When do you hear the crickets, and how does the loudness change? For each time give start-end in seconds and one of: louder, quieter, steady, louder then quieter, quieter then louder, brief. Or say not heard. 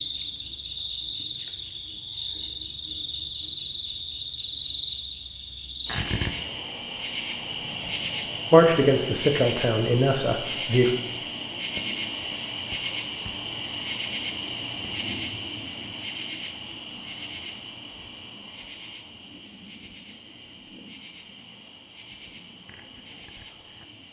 0.0-24.0 quieter.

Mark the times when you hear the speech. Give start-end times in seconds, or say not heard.
8.5-10.9.